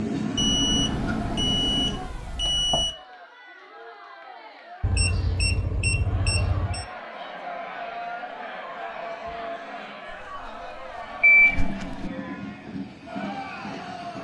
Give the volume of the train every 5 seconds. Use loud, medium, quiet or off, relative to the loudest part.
loud, off, medium.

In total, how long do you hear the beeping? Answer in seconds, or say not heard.
6 s.